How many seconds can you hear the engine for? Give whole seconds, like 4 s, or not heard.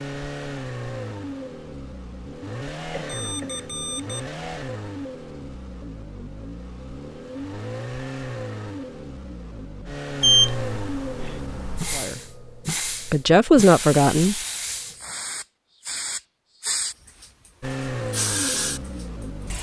14 s.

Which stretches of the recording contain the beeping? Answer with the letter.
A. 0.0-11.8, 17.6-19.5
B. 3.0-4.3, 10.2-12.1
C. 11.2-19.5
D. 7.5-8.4
B.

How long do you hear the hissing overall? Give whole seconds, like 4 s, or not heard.
8 s.